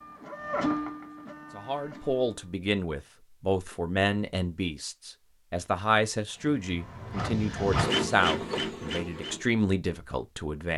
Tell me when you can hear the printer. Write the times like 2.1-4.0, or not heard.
0.0-2.5, 6.5-9.4.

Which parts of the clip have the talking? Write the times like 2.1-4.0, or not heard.
1.6-10.7.